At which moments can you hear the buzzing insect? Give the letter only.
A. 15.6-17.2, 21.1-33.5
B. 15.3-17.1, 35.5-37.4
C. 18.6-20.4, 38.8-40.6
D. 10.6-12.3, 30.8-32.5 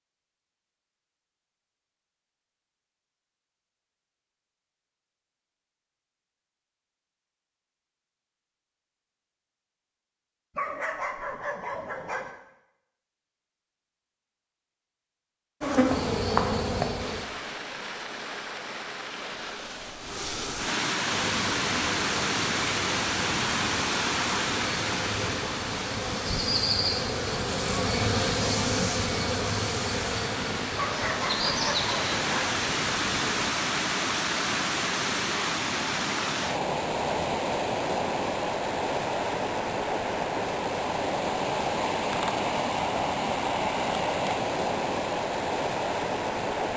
A.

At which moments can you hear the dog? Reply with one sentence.
You can hear the dog from 10.6 to 12.3 s and from 30.8 to 32.5 s.